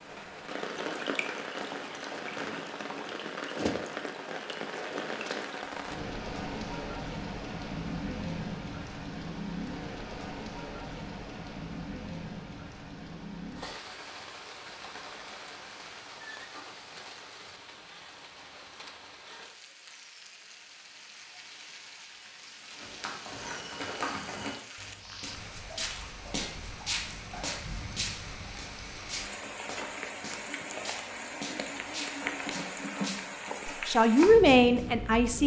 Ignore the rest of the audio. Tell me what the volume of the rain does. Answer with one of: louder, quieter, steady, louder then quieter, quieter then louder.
quieter then louder.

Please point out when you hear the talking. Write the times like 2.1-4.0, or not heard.
33.6-35.4.